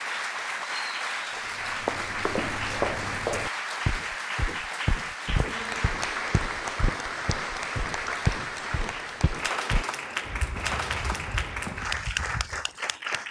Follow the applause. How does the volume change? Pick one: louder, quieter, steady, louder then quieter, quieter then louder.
steady.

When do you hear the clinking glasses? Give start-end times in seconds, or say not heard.
not heard.